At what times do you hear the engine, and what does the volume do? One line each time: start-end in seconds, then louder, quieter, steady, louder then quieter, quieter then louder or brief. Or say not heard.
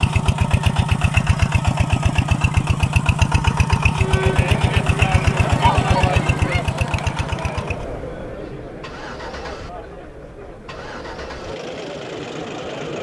0.0-12.9 quieter.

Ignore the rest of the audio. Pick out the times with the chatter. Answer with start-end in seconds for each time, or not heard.
4.0-12.9.